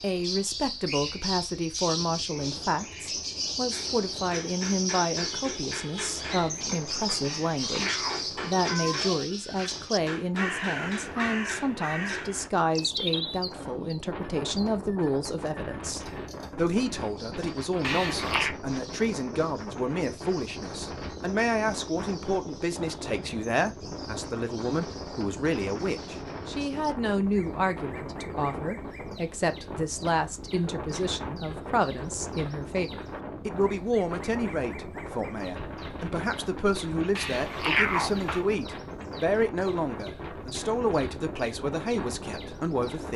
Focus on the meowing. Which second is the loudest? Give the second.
38 s.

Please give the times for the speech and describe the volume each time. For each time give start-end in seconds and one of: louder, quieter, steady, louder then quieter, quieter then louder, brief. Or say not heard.
0.0-43.1 steady.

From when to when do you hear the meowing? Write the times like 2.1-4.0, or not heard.
7.2-9.2, 17.8-18.6, 37.1-38.5.